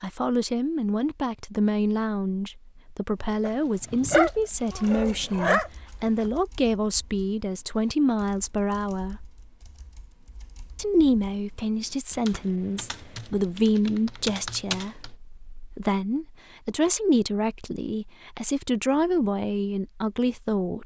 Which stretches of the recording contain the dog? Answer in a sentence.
The dog can be heard from 3.5 to 6.3 s.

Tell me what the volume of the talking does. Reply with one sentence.
The volume of the talking stays about the same.